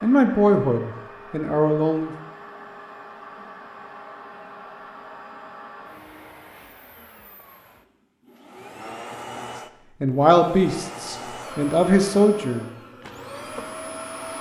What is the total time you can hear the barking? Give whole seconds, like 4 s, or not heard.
not heard.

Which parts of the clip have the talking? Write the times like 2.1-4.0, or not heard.
0.0-2.1, 10.0-12.7.